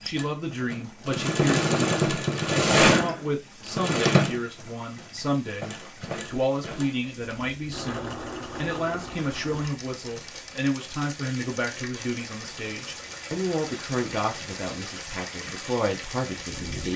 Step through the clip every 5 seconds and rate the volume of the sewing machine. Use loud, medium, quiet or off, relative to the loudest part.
loud, quiet, quiet, quiet.